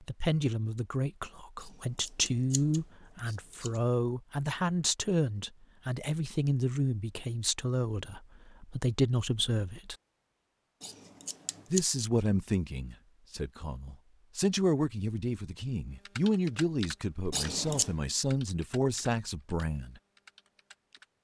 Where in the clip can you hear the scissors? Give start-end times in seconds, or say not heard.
1.6-3.8, 10.8-11.8, 17.3-17.9.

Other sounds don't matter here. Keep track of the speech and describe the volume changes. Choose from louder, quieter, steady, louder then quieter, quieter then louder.
steady.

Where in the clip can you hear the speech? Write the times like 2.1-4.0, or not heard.
0.0-9.9, 11.7-20.0.